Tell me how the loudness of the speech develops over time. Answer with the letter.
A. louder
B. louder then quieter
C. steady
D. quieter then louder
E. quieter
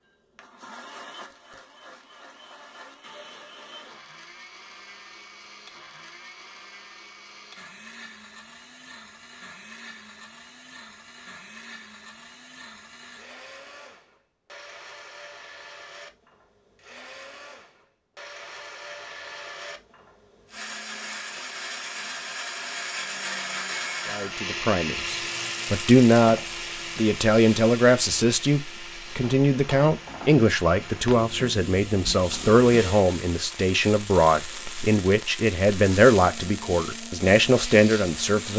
C.